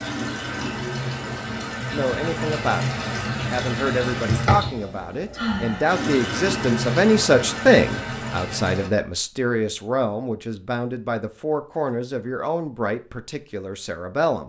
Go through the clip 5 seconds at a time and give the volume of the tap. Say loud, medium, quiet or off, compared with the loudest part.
loud, loud, off.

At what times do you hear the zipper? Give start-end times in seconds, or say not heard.
not heard.